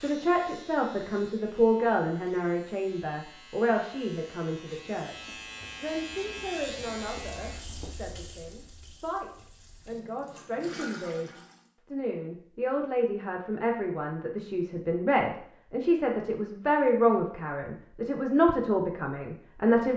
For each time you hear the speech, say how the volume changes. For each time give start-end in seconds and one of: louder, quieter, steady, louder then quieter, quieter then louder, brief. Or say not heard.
0.0-19.9 quieter then louder.